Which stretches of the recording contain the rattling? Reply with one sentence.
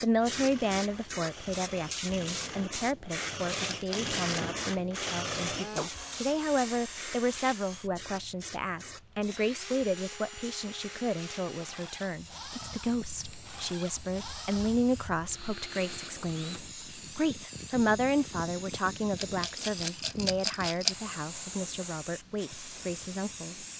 The rattling can be heard from 3.7 to 4.5 s and from 19.1 to 20.9 s.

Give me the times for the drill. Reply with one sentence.
The drill can be heard from 0.0 to 16.6 s.